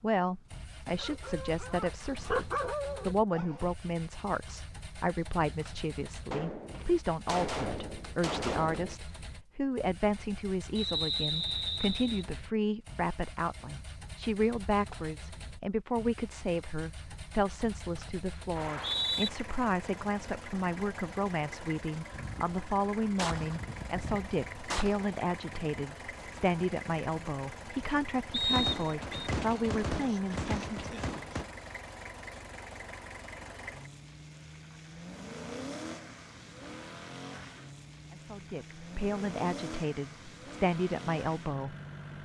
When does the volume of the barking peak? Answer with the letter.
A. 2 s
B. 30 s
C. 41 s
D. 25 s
A.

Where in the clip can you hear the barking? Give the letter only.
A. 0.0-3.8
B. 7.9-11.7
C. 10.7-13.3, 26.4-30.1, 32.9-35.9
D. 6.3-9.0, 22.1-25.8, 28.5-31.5
A.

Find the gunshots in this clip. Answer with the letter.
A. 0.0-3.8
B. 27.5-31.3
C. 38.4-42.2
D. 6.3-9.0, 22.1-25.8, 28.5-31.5
D.